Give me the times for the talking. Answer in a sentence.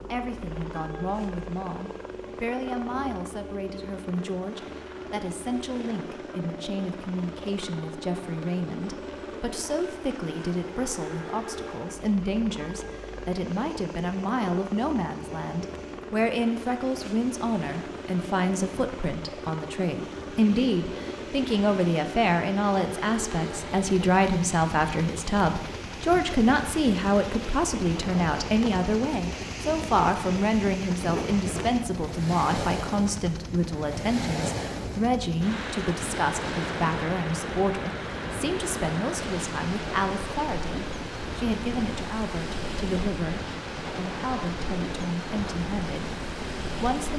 You can hear the talking from 0.1 to 47.1 s.